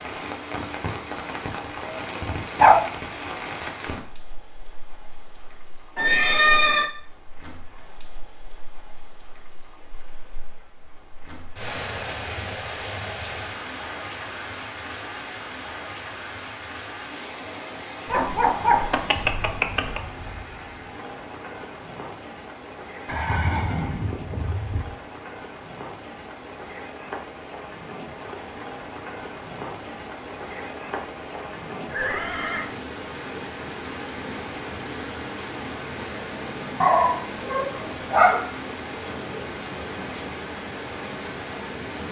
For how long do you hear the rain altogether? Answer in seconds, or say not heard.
42 s.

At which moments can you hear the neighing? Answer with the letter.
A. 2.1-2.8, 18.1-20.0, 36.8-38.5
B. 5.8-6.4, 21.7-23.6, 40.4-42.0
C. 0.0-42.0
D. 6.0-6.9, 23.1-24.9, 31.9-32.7
D.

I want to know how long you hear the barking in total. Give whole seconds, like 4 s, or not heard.
4 s.